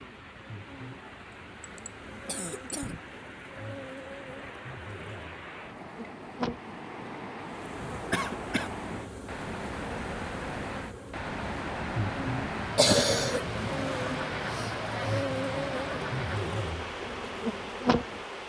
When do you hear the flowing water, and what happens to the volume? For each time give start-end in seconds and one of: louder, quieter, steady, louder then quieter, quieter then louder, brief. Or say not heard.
0.0-18.4 louder.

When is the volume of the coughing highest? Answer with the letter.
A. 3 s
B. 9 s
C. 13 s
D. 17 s
C.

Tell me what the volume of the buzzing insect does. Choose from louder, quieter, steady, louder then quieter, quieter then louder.
louder.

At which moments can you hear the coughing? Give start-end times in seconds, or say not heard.
1.6-3.0, 8.1-8.7, 12.8-15.2.